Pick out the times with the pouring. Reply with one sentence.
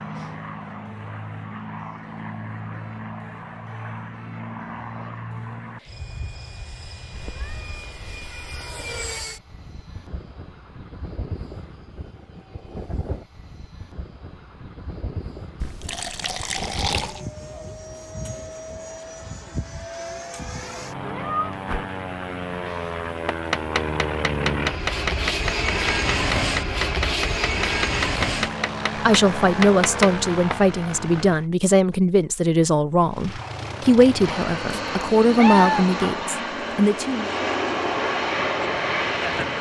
You can hear the pouring from 15.6 to 17.2 s.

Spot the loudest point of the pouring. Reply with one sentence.
The loudest moment of the pouring is at 17 seconds.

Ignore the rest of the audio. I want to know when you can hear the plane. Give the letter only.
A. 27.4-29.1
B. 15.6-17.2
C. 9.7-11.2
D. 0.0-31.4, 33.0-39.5
D.